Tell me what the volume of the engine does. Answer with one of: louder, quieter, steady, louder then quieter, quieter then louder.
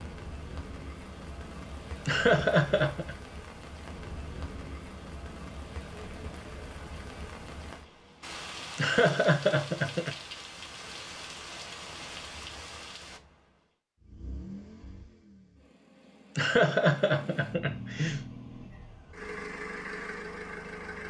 quieter then louder.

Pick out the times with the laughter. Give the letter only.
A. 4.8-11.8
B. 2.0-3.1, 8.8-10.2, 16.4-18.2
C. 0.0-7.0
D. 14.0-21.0
B.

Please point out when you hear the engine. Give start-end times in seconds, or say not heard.
14.0-21.0.